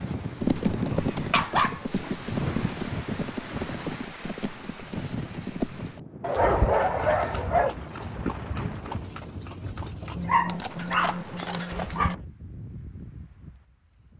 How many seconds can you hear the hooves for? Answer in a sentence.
You can hear the hooves for 12 seconds altogether.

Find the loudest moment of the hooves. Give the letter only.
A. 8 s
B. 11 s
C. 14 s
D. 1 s
D.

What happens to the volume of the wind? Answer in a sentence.
The loudness of the wind goes down.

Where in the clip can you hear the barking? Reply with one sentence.
The barking can be heard from 0.6 to 1.9 s, from 6.2 to 7.8 s and from 10.2 to 12.2 s.